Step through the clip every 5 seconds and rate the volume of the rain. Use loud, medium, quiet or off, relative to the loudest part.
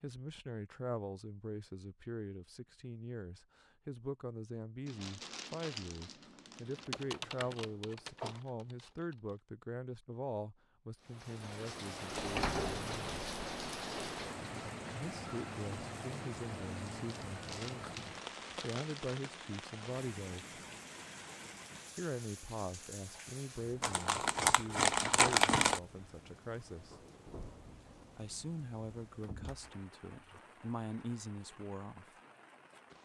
off, off, loud, loud, medium, quiet, quiet.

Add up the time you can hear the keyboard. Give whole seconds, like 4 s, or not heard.
3 s.